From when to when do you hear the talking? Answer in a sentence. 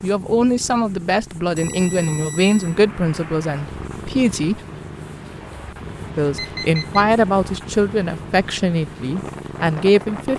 The talking can be heard from 0.0 to 4.6 s and from 6.2 to 10.3 s.